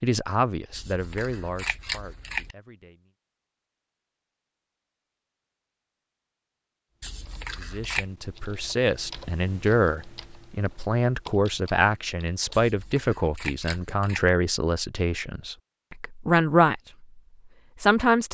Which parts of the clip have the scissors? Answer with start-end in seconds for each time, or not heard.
0.7-2.5, 7.0-8.1, 12.5-14.3.